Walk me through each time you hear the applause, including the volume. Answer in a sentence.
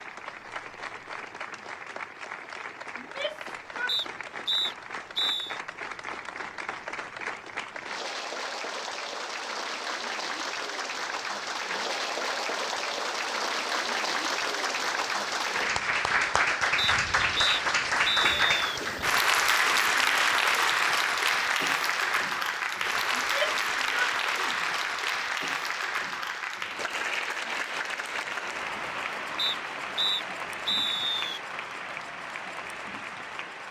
You can hear the applause from 0.0 to 33.6 s, getting louder then quieter.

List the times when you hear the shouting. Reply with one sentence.
You can hear the shouting from 3.0 to 4.0 s and from 23.1 to 24.6 s.